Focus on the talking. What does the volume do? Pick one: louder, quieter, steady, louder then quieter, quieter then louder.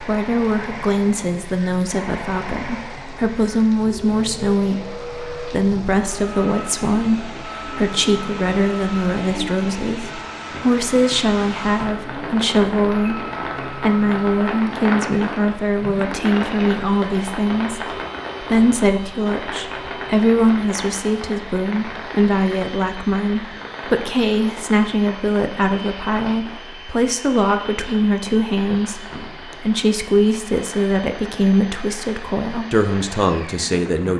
steady.